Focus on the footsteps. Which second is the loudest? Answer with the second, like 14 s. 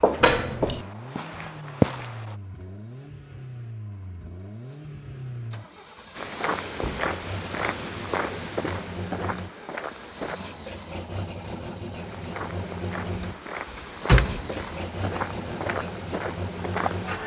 2 s.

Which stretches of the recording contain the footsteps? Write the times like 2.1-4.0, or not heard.
0.0-2.4, 6.2-10.4, 11.9-17.2.